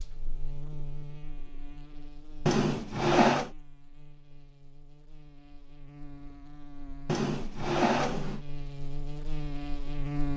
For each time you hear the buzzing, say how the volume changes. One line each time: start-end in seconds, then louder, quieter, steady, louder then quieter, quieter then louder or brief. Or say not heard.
0.0-10.3 quieter then louder.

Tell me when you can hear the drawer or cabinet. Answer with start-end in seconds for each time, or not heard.
2.5-3.5, 7.0-8.4.